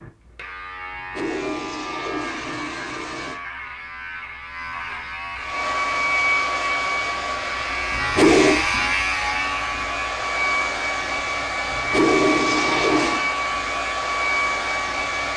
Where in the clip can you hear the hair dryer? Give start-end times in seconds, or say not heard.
5.3-15.3.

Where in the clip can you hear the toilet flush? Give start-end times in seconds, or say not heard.
0.9-3.4, 8.0-8.7, 11.7-13.2.